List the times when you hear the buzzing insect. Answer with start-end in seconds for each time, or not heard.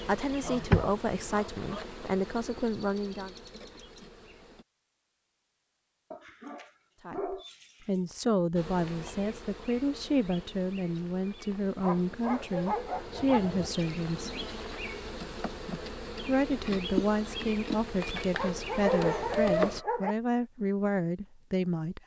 0.0-4.7, 8.6-19.9.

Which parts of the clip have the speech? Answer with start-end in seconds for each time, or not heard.
0.1-3.3, 7.0-14.4, 16.2-22.0.